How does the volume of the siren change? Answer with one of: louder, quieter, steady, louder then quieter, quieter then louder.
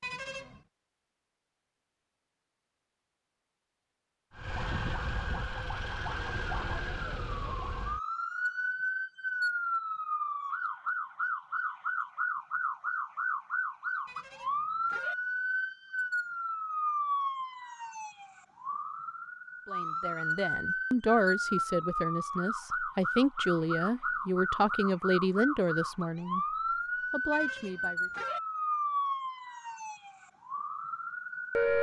steady.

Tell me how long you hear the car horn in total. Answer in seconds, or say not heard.
3 s.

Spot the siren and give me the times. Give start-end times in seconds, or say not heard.
4.3-31.7.